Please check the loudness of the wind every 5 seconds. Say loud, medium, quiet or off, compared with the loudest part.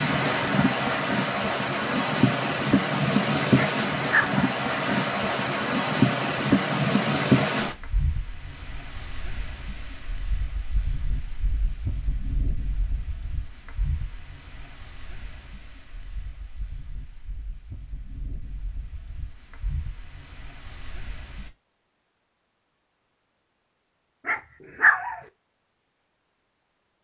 loud, loud, quiet, quiet, quiet, off.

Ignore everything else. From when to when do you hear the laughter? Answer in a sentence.
The laughter can't be heard in this clip.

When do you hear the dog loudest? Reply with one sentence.
The volume of the dog peaks at 25 seconds.